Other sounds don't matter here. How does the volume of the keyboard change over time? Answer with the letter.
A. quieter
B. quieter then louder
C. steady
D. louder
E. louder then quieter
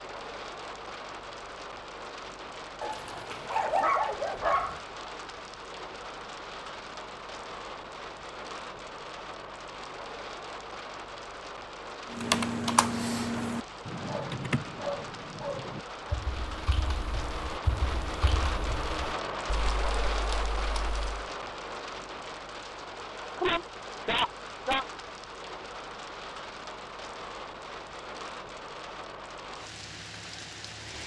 A.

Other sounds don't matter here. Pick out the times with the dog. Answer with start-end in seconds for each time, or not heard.
2.8-4.8, 14.1-16.2, 23.4-24.9.